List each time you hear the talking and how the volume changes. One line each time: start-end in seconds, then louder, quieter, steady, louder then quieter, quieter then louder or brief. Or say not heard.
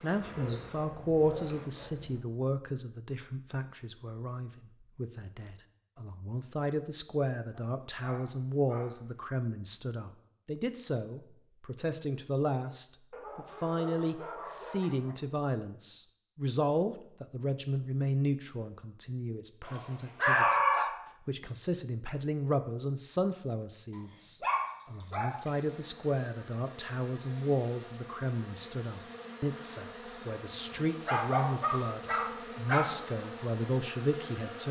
0.0-34.6 steady.